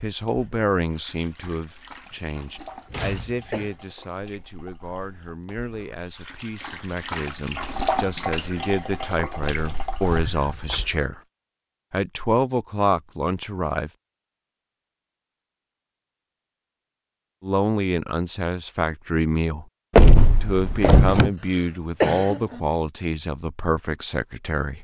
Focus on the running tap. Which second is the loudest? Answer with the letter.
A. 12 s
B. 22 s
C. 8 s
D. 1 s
C.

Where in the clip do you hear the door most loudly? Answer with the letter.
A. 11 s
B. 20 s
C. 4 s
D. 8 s
B.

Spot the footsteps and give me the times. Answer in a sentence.
The footsteps can't be heard in this clip.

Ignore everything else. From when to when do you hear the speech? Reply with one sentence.
You can hear the speech from 0.0 to 11.2 s, from 11.9 to 13.9 s, from 17.4 to 19.6 s and from 20.4 to 24.7 s.